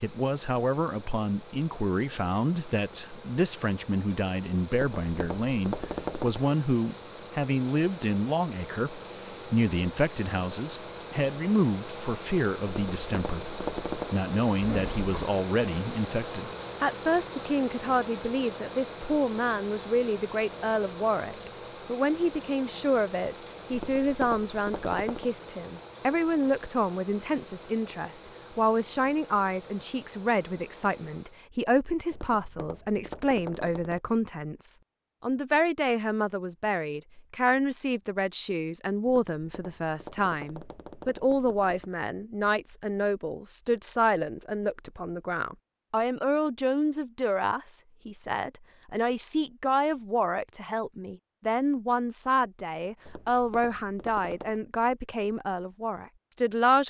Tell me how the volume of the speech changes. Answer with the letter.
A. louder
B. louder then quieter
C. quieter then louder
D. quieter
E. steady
E.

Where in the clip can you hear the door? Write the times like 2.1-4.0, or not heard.
14.6-15.3.